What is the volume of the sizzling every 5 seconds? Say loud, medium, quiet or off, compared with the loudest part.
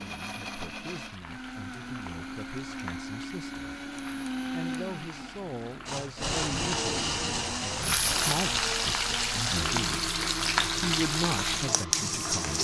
quiet, loud, loud.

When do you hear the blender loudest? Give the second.
7 s.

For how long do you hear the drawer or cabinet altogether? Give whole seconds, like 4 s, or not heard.
2 s.